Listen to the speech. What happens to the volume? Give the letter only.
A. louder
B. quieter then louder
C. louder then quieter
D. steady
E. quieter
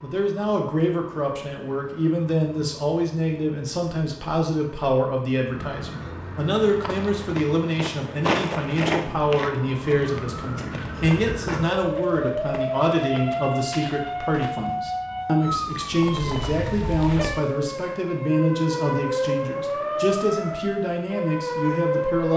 D.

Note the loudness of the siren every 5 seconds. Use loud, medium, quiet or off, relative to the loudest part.
quiet, medium, loud, loud, loud.